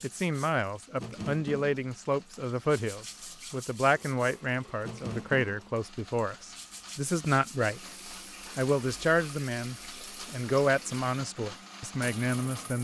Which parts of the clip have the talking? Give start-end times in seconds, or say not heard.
0.0-7.8, 8.6-12.7.